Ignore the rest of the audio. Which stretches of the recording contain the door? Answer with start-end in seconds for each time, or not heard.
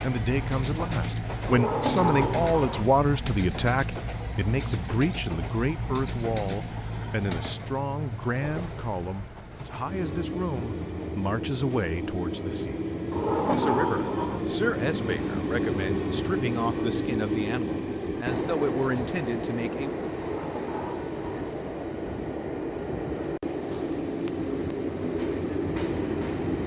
1.4-3.0, 13.1-14.4, 20.4-21.4.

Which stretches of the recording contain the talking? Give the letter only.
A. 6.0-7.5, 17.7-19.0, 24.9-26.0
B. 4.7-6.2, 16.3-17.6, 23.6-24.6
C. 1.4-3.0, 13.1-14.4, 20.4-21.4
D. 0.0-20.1
D.